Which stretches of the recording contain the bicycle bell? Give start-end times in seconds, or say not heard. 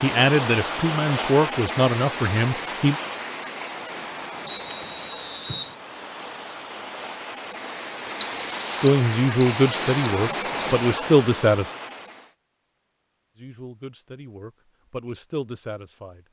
not heard.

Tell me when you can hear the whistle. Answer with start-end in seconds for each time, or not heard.
4.5-5.8, 8.2-10.9.